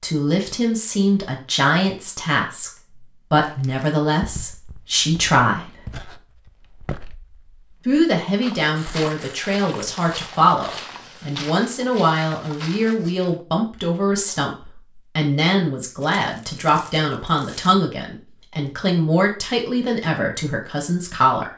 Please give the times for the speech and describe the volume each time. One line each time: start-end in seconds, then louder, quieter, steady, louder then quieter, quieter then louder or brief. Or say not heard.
0.0-5.8 steady
7.8-21.5 steady.